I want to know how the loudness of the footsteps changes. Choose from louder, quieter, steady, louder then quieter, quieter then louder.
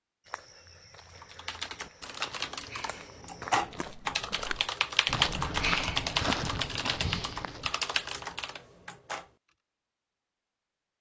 louder.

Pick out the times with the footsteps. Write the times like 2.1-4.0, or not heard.
0.2-7.8.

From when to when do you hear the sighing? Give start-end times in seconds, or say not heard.
2.6-3.2, 5.6-6.0.